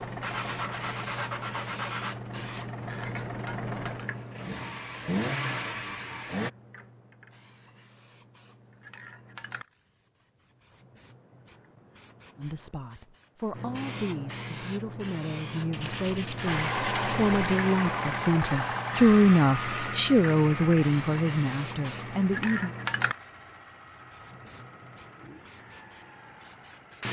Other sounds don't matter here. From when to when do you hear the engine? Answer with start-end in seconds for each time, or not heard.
0.0-6.5, 16.4-27.0.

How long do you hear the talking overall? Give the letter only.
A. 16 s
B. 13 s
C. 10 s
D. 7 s
C.